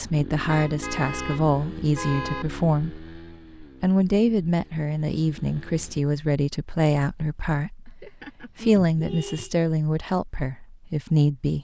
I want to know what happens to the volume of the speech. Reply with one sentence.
The loudness of the speech stays about the same.